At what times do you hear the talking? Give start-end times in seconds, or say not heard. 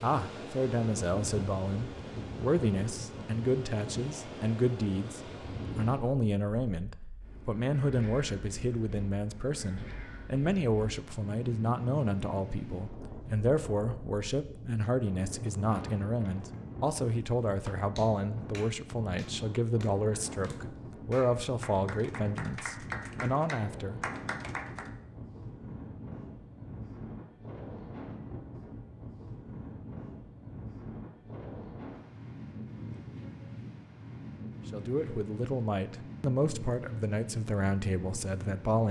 0.0-24.0, 34.7-38.8.